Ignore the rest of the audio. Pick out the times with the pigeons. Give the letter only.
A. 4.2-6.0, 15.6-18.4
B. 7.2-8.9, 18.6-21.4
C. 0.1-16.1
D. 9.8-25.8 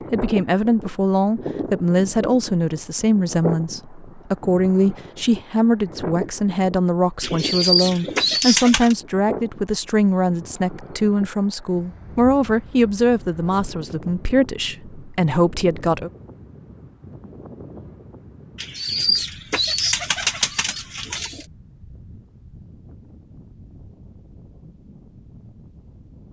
B.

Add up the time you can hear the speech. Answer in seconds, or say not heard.
16 s.